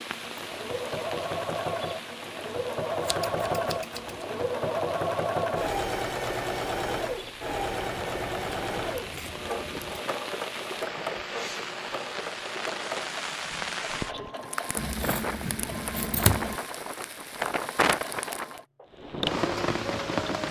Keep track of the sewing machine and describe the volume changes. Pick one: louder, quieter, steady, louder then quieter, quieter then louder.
quieter.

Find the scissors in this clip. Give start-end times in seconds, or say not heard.
3.0-4.2, 7.9-10.0, 14.8-16.6.